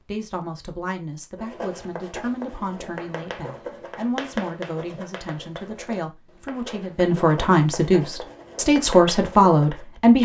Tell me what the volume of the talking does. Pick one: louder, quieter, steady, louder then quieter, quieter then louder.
louder.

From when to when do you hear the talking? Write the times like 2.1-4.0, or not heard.
0.0-10.2.